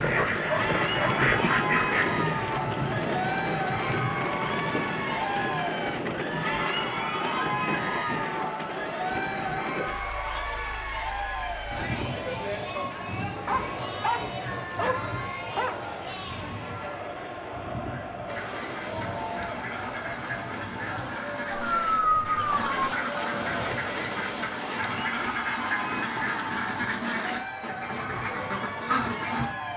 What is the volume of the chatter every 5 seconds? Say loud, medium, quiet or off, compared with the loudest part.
loud, loud, loud, medium, medium, medium.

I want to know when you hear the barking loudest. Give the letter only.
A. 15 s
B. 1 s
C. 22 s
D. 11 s
C.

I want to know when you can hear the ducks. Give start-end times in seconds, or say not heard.
0.0-2.2, 18.2-29.5.